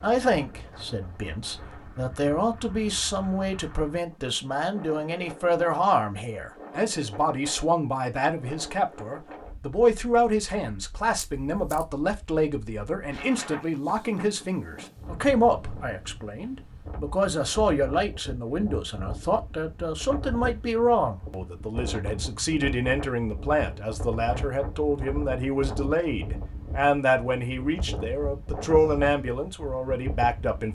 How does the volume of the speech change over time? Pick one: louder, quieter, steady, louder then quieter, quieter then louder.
steady.